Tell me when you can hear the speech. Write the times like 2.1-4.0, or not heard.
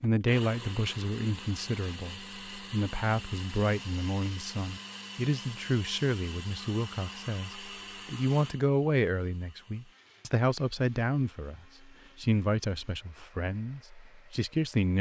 0.0-14.9.